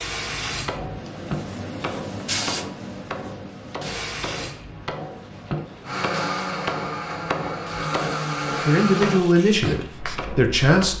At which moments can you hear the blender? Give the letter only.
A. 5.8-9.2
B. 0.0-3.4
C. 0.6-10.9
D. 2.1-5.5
A.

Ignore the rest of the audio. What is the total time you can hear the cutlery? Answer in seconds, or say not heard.
not heard.